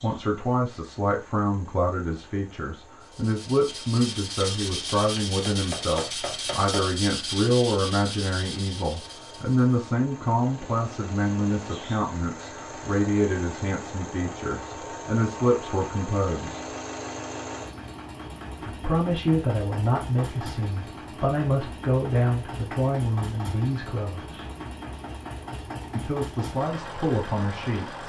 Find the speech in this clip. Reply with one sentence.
You can hear the speech from 0.0 to 16.6 s, from 18.6 to 24.5 s and from 25.9 to 28.0 s.